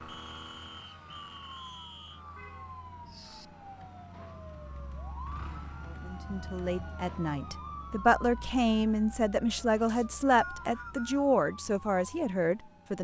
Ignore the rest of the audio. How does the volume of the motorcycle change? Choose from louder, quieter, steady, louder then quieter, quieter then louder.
quieter then louder.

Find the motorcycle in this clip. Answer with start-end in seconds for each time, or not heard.
0.0-6.2.